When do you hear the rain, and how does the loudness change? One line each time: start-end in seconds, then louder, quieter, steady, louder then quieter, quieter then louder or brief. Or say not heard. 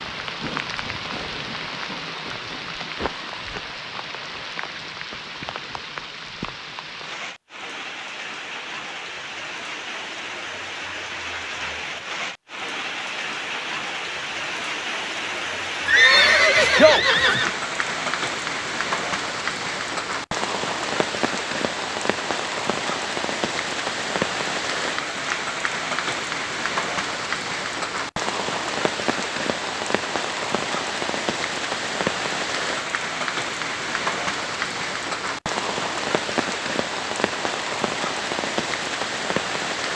0.0-39.9 louder.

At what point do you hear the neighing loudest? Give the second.
16 s.